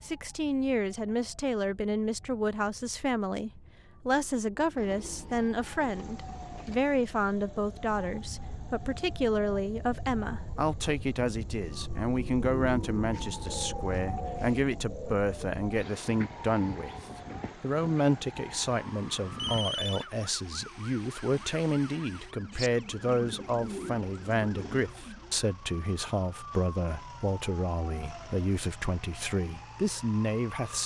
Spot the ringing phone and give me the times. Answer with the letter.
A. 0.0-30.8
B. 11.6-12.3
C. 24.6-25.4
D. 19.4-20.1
D.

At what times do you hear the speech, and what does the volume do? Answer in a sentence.
The speech can be heard from 0.0 to 30.8 s, at a steady volume.